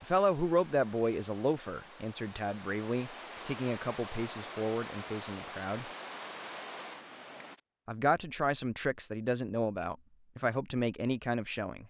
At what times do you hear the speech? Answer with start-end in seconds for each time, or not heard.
0.0-5.8, 7.8-11.8.